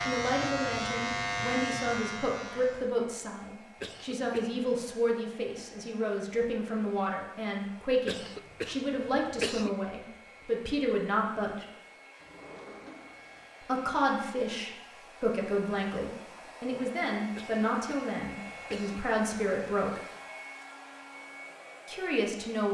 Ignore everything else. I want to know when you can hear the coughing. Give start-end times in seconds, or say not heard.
3.8-4.7, 8.1-9.7, 17.4-19.1.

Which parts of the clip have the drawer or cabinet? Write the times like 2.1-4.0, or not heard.
12.2-13.5.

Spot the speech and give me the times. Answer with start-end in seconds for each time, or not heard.
0.1-11.7, 13.6-20.0, 21.9-22.6.